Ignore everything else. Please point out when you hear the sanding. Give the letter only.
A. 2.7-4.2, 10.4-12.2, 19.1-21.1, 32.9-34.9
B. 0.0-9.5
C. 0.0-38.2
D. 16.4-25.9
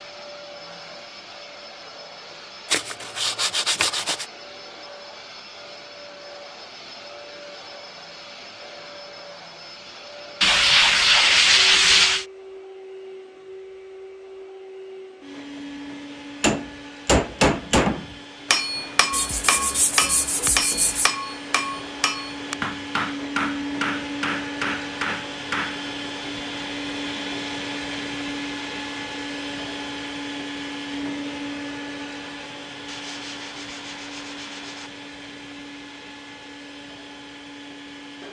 A.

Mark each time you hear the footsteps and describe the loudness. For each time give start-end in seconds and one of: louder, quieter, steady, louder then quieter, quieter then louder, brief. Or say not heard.
not heard.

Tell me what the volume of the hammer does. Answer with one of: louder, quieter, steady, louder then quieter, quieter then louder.
quieter.